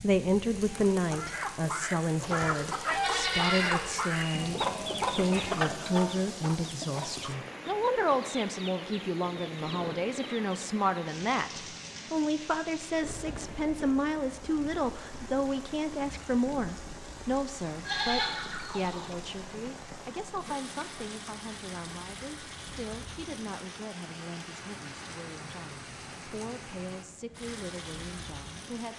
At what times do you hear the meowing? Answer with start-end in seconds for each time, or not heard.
not heard.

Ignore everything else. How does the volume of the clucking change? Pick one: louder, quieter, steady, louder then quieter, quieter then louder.
quieter.